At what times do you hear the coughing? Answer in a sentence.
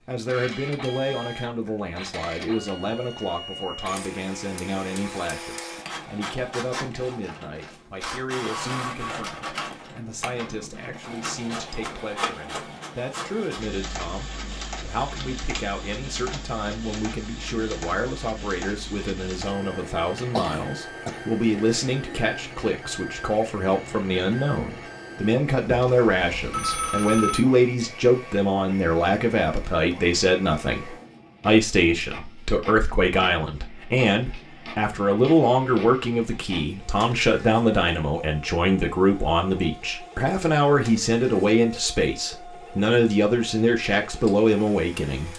You can hear the coughing from 20.4 to 21.3 s.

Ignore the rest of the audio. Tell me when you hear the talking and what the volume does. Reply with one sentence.
The talking can be heard from 0.1 to 45.3 s, getting louder.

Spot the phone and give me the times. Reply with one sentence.
You can hear the phone from 25.6 to 27.4 s.